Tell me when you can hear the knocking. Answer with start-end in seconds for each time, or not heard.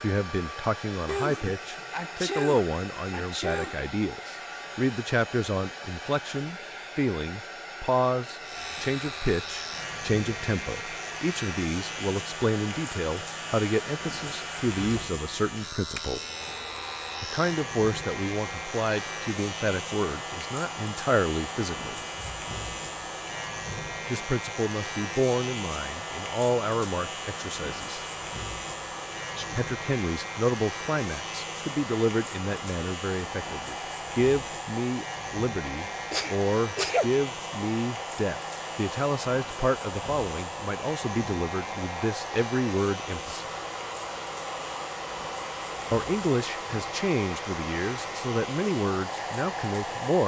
not heard.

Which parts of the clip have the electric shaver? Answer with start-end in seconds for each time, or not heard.
8.4-50.2.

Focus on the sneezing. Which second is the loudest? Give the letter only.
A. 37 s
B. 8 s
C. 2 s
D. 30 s
A.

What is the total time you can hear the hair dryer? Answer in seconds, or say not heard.
50 s.